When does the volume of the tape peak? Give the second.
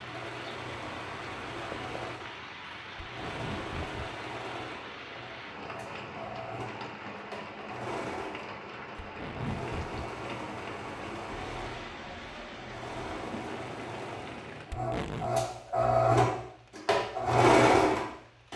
15 s.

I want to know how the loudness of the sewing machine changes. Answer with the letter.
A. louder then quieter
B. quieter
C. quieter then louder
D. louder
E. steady
D.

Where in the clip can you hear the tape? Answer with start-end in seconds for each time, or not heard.
3.0-4.0, 9.0-10.1, 14.7-15.3.